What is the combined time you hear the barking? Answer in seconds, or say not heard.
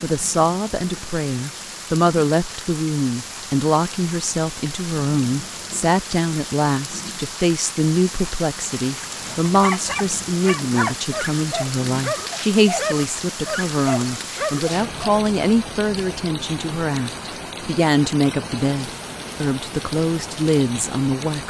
6 s.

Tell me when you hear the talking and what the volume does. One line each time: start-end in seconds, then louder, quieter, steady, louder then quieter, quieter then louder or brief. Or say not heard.
0.0-21.4 steady.